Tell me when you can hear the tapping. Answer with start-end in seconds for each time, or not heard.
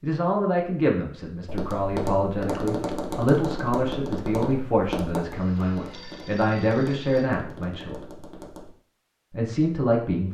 1.4-8.8.